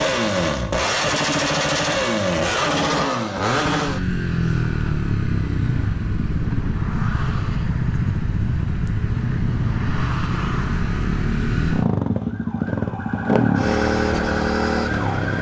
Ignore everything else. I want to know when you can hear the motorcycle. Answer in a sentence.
The motorcycle can be heard from 0.0 to 15.3 s.